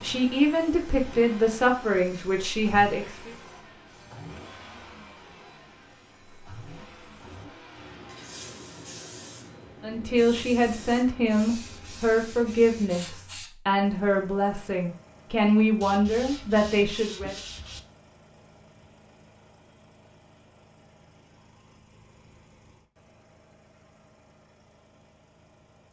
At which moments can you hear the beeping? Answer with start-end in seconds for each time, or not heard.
not heard.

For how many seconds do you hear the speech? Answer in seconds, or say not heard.
11 s.